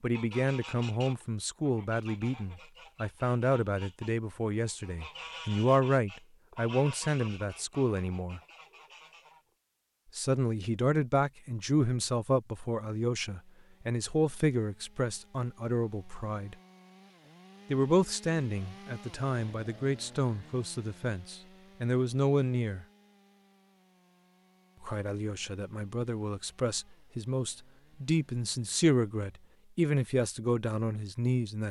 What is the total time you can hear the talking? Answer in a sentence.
The talking can be heard for 27 seconds in total.